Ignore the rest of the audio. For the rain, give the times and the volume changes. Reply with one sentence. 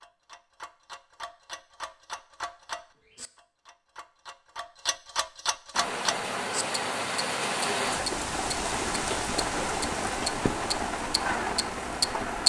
You can hear the rain from 5.7 to 12.4 s, at a steady volume.